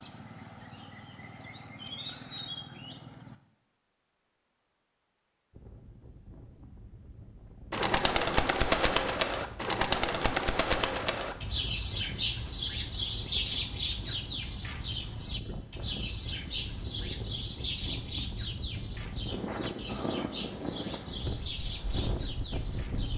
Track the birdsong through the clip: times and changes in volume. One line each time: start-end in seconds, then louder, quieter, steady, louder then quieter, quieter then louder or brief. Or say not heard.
0.0-23.1 louder then quieter.